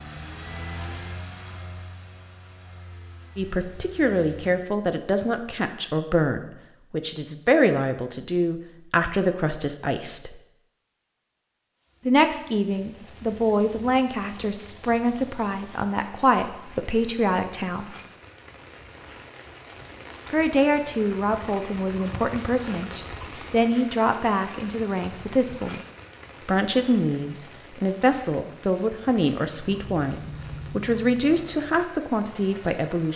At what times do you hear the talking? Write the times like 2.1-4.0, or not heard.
3.4-10.4, 12.1-17.9, 20.3-25.9, 26.4-33.1.